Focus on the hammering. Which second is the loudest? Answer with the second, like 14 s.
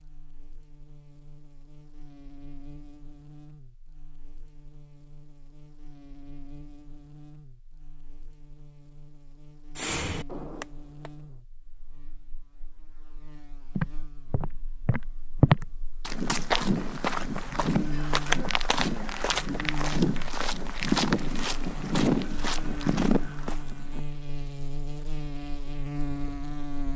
10 s.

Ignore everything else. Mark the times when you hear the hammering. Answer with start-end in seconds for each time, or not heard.
9.8-11.2.